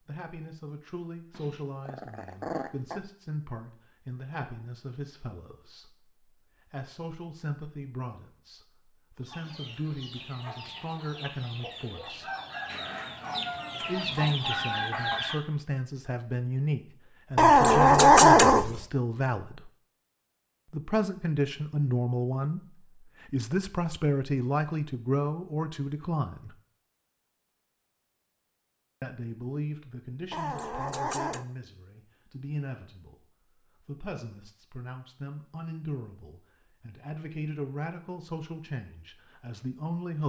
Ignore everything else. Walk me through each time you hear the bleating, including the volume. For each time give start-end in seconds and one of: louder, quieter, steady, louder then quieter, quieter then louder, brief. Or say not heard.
not heard.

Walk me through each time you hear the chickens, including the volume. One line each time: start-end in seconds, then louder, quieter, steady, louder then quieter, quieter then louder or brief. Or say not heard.
9.2-15.4 louder.